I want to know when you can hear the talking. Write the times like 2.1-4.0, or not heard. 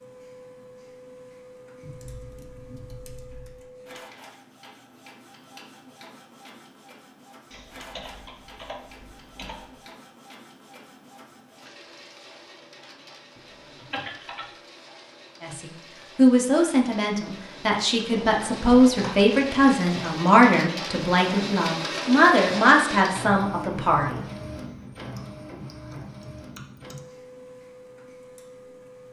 15.4-24.2.